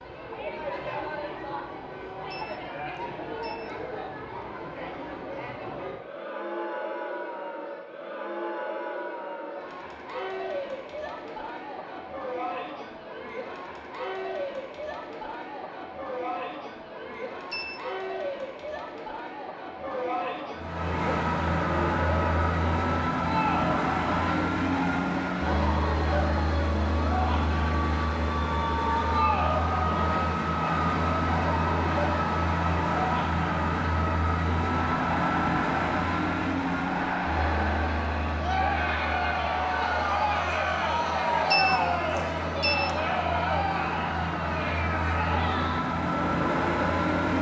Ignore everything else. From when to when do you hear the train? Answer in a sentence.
The train can be heard from 20.6 to 47.3 s.